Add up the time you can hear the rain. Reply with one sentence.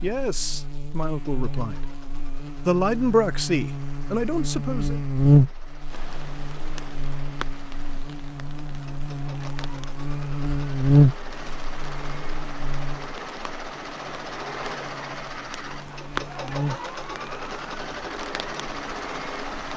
You can hear the rain for 14 seconds altogether.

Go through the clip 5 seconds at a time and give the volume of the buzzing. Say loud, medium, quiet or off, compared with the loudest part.
medium, loud, loud, quiet.